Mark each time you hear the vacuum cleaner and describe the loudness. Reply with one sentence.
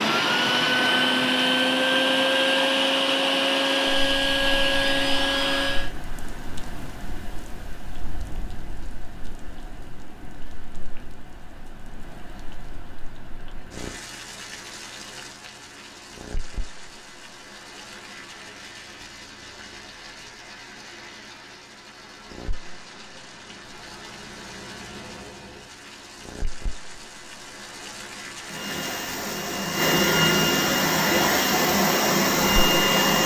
You can hear the vacuum cleaner from 0.0 to 5.9 s, at a steady volume; and from 28.4 to 33.2 s, getting louder.